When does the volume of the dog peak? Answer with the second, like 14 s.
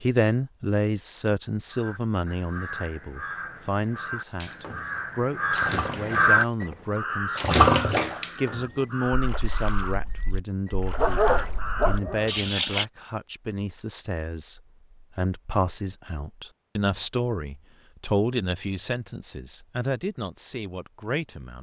11 s.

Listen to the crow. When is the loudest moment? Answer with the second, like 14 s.
6 s.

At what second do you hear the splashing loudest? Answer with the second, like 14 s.
8 s.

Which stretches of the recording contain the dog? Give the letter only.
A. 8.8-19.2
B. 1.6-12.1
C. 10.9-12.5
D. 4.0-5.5
C.